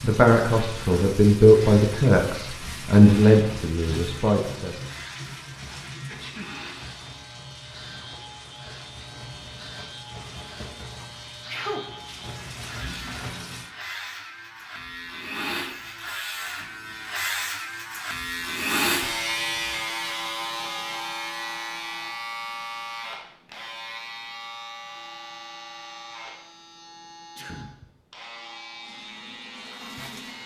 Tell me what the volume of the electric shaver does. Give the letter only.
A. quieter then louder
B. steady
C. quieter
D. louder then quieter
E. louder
D.